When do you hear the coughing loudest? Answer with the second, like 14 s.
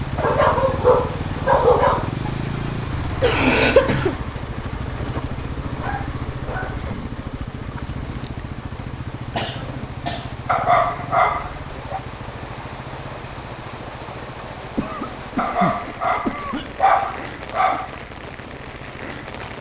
4 s.